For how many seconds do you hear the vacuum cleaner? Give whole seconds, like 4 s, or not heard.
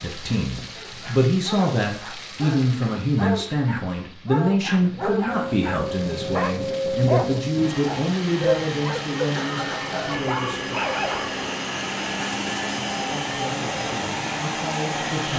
10 s.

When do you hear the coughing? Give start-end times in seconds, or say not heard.
9.3-10.2.